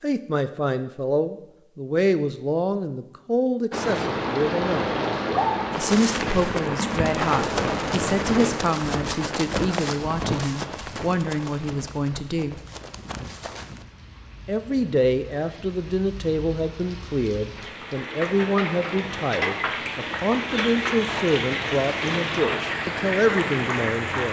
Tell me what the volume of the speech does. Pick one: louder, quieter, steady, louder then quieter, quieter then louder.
steady.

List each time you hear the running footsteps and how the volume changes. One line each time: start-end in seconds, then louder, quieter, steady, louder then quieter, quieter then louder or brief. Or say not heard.
5.7-13.8 quieter.